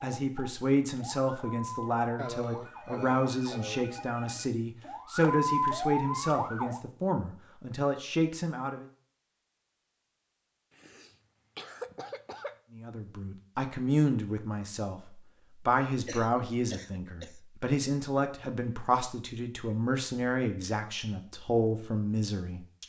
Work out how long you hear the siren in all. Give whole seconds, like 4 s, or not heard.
7 s.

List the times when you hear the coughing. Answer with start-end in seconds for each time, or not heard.
2.1-3.9, 10.8-12.6, 16.1-17.4.